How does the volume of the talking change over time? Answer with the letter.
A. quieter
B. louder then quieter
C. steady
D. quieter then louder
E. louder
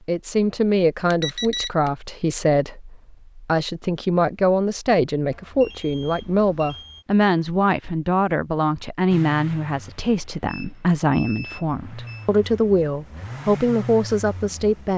C.